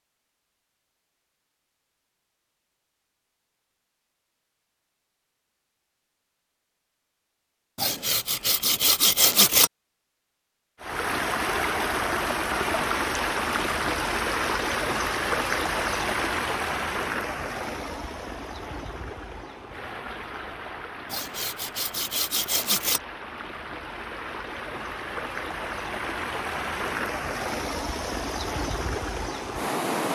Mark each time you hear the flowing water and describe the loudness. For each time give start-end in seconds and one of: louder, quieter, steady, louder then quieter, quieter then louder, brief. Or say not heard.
10.8-30.1 quieter then louder.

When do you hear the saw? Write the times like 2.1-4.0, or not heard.
7.8-9.7, 21.1-23.0.